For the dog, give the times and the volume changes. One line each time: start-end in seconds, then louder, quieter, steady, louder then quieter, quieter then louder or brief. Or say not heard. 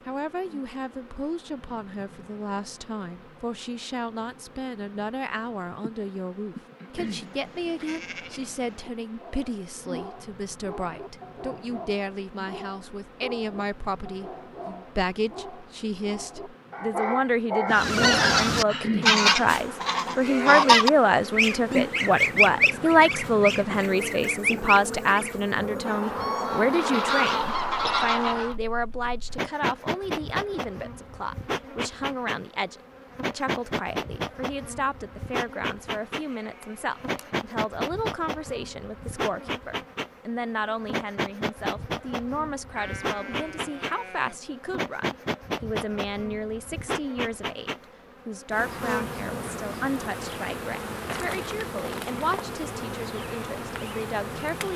9.2-18.9 louder.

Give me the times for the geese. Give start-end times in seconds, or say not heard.
17.7-28.6.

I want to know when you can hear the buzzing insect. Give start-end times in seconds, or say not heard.
0.0-54.7.